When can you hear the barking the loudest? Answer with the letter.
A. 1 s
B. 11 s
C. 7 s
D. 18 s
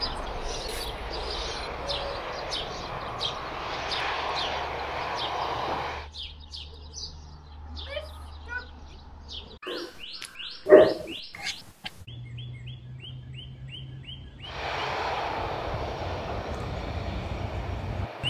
B.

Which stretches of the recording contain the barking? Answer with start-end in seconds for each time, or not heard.
9.7-11.9.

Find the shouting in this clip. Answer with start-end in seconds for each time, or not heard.
7.7-8.9.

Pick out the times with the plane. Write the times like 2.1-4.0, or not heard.
0.0-6.1, 14.4-18.2.